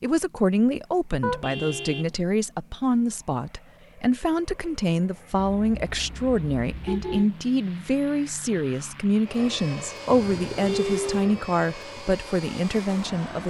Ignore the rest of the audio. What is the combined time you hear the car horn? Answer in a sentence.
The car horn can be heard for 4 seconds in total.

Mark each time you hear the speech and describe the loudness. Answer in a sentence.
The speech can be heard from 0.0 to 13.4 s, at a steady volume.